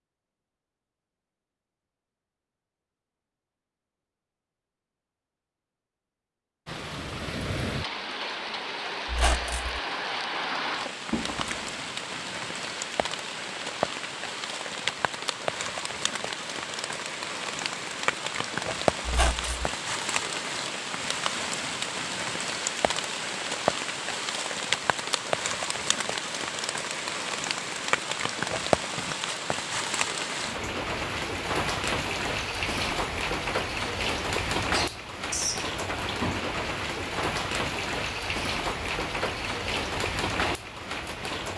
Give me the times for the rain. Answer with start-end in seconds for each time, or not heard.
6.7-41.5.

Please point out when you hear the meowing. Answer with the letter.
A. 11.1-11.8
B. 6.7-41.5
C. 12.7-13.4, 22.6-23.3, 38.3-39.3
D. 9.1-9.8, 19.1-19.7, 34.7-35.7
A.